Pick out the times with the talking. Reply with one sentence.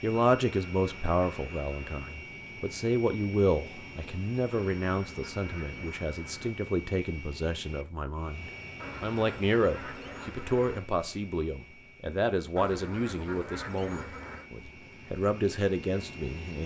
The talking can be heard from 0.0 to 16.6 s.